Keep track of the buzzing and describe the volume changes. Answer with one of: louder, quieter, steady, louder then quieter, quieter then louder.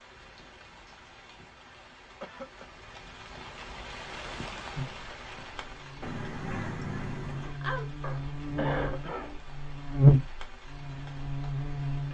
louder then quieter.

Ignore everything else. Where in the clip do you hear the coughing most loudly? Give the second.
9 s.